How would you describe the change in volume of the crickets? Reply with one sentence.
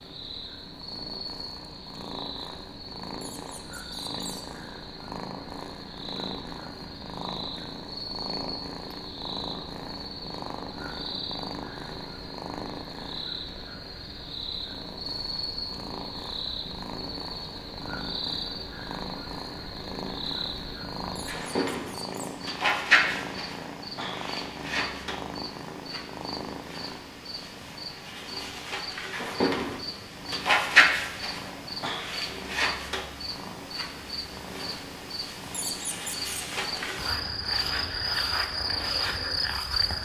The loudness of the crickets goes up.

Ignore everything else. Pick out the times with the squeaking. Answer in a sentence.
The squeaking can be heard from 3.2 to 4.5 s, from 21.1 to 22.4 s and from 35.5 to 36.3 s.